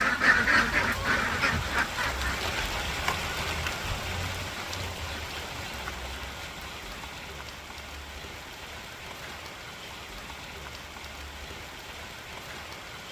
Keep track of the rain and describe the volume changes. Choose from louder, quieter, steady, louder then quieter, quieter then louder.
quieter.